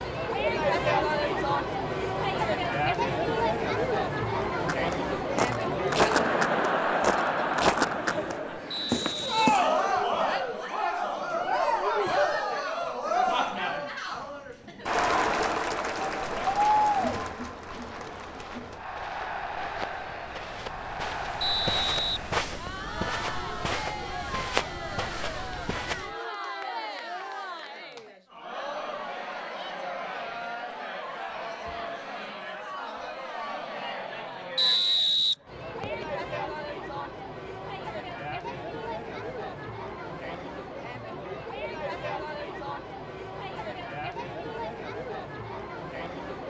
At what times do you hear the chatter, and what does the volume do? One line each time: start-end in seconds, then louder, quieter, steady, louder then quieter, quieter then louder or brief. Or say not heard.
0.0-46.4 quieter.